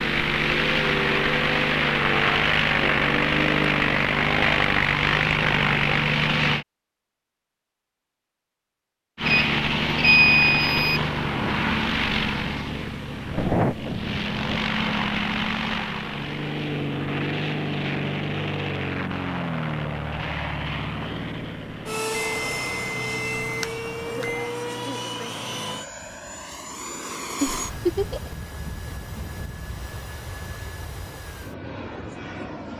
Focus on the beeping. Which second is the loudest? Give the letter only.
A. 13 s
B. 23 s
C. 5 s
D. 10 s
D.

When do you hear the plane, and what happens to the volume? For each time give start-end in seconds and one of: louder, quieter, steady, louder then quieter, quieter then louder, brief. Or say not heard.
0.0-6.7 steady
9.2-32.7 quieter.